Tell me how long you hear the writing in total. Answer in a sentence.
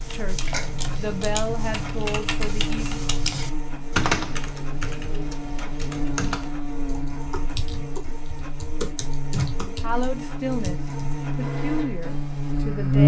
You can't hear the writing here.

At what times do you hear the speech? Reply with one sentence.
You can hear the speech from 0.1 to 3.0 s and from 9.7 to 13.0 s.